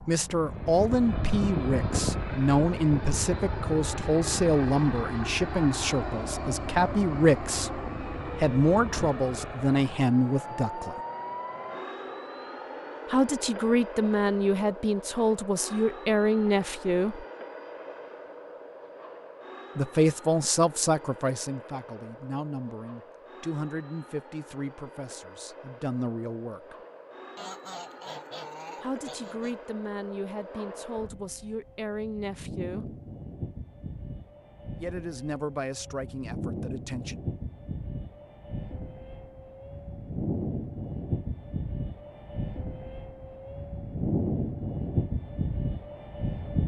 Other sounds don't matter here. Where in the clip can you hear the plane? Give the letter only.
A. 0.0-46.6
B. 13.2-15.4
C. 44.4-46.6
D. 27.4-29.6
A.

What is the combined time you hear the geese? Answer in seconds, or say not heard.
2 s.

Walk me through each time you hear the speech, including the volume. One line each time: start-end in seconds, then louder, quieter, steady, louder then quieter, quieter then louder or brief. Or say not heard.
0.1-10.9 steady
13.1-17.2 steady
19.8-26.8 quieter
28.8-33.0 steady
34.8-37.2 brief.